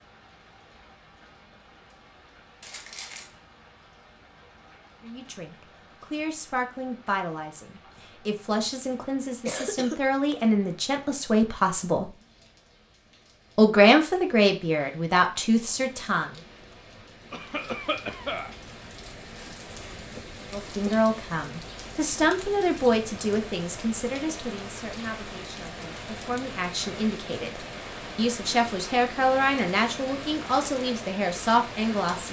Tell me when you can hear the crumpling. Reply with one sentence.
You can hear the crumpling from 2.6 to 3.4 s.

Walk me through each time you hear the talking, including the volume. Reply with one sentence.
The talking can be heard from 5.0 to 12.1 s, getting louder; briefly from 13.6 to 16.4 s; and from 20.5 to 32.2 s, getting quieter then louder.